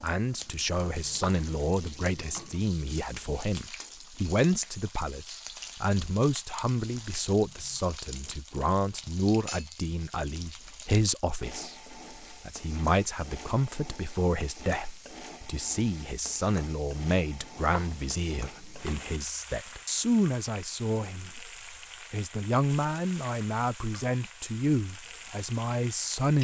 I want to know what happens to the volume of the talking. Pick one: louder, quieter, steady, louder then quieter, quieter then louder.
steady.